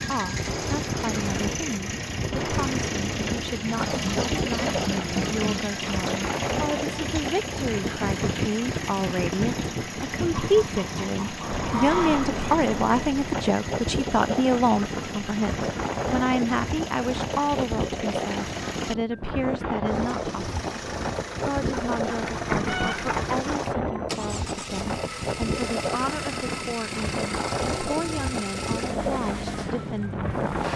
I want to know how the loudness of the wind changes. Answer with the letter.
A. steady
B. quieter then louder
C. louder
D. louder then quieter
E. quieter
A.